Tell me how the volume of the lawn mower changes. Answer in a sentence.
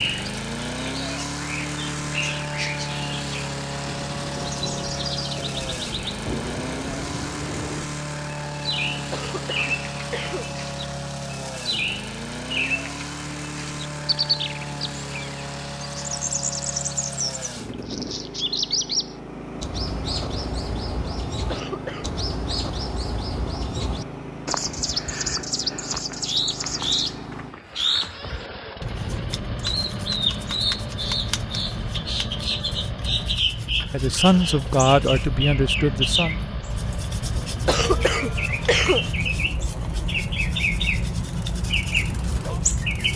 The volume of the lawn mower goes down.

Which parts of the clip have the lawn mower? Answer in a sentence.
You can hear the lawn mower from 0.0 to 43.1 s.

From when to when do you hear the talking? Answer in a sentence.
The talking can be heard from 33.9 to 36.4 s.